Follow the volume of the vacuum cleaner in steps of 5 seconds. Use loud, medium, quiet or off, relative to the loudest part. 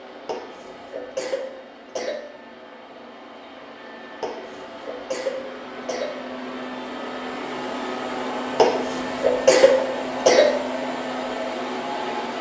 quiet, loud, loud.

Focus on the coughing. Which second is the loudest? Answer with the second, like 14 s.
10 s.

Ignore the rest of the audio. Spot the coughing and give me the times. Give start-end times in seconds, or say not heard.
0.2-2.2, 4.2-6.2, 8.6-10.6.